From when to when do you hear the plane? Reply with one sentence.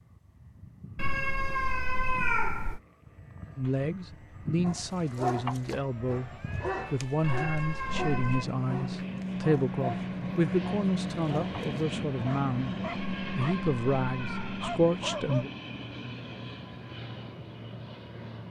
The plane can be heard from 0.0 to 18.4 s.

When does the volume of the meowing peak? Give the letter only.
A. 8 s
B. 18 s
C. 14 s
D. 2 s
D.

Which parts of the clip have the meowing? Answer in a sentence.
The meowing can be heard from 0.9 to 2.8 s, from 7.2 to 8.4 s and from 12.9 to 14.7 s.